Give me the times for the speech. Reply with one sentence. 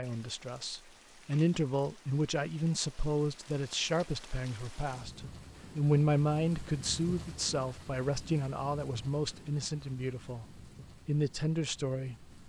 You can hear the speech from 0.0 to 12.2 s.